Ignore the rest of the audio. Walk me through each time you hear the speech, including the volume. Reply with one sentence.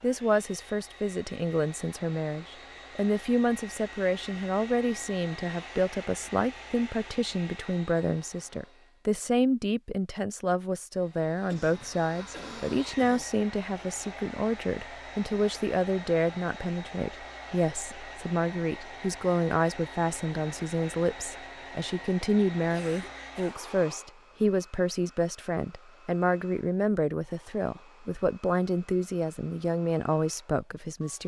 You can hear the speech from 0.0 to 31.2 s, at a steady volume.